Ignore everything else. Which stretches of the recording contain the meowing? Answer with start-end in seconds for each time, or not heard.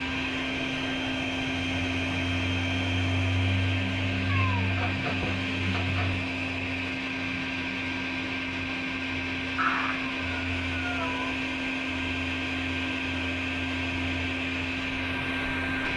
4.2-6.2, 9.6-11.3.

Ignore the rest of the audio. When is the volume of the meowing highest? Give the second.
10 s.